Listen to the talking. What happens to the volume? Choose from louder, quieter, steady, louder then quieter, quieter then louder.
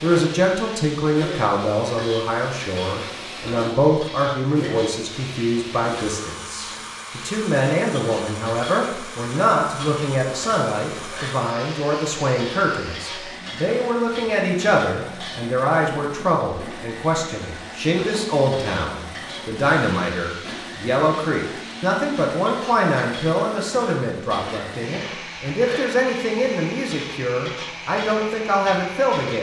steady.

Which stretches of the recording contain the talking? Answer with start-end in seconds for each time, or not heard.
0.0-29.3.